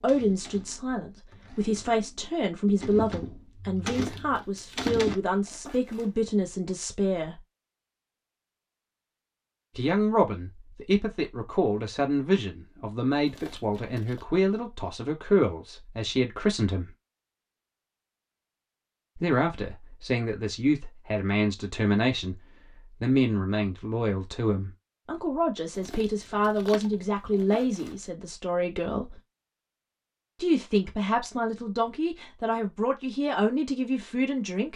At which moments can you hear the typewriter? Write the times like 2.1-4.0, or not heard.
0.0-5.2.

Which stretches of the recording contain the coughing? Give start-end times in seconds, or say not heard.
not heard.